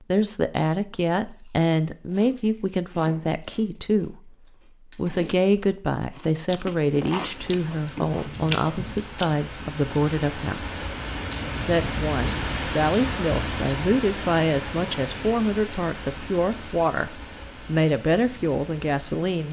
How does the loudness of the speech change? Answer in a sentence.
The loudness of the speech stays about the same.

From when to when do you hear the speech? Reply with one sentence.
The speech can be heard from 0.1 to 4.3 s, from 5.0 to 10.8 s and from 11.6 to 19.4 s.